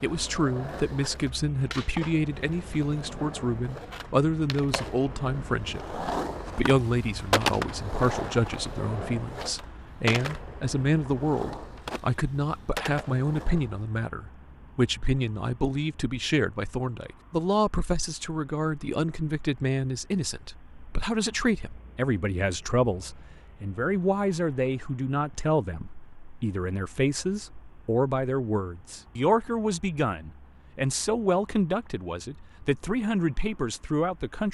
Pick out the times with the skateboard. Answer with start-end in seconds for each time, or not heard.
0.0-13.8.